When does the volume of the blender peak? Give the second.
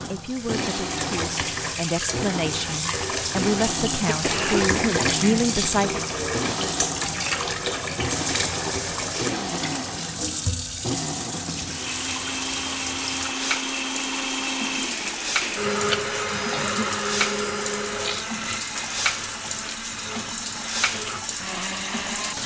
16 s.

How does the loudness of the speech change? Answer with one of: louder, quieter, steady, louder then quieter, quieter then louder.
louder.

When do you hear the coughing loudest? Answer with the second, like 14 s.
5 s.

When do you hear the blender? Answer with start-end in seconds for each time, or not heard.
0.0-22.4.